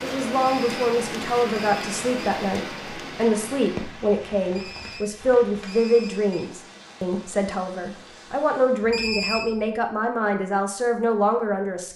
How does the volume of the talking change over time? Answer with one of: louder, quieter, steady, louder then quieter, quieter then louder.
steady.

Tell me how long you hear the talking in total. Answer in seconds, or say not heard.
12 s.